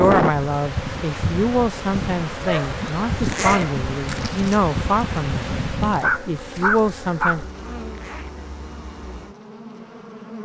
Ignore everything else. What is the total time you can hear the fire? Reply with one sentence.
The fire can't be heard in this clip.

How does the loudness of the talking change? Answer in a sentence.
The volume of the talking stays about the same.